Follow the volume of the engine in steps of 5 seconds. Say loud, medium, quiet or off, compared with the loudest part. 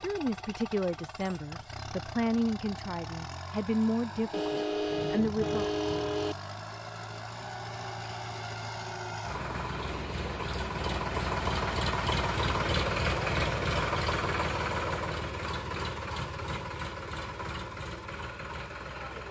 quiet, medium, loud, medium.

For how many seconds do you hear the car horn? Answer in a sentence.
You can hear the car horn for 2 seconds altogether.